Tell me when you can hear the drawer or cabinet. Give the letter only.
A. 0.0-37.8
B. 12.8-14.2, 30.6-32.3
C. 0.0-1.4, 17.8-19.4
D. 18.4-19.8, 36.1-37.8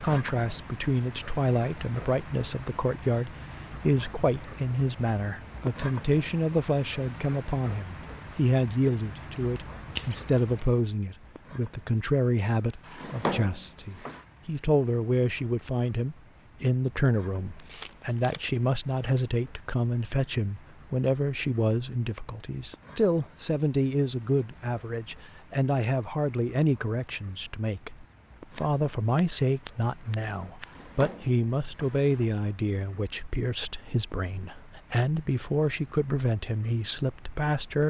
B.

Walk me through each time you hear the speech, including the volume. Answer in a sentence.
The speech can be heard from 0.0 to 37.8 s, at a steady volume.